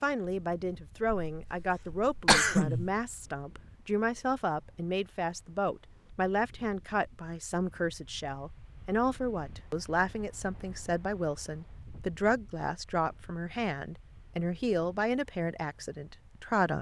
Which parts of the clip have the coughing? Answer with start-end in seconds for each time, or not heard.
1.2-2.9.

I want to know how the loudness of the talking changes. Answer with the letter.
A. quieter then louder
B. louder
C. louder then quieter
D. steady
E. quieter
D.